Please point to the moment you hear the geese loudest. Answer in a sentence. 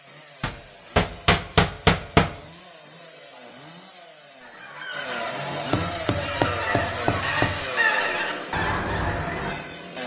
The loudest moment of the geese is at 8 seconds.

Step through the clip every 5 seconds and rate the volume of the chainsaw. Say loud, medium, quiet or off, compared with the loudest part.
quiet, loud.